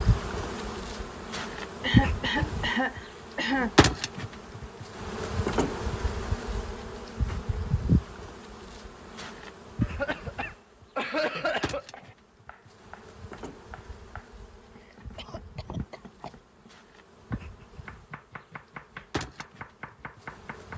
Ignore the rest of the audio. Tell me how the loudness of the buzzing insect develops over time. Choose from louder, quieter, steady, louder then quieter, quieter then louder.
quieter.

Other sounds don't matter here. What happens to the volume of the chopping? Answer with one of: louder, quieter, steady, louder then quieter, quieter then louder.
louder.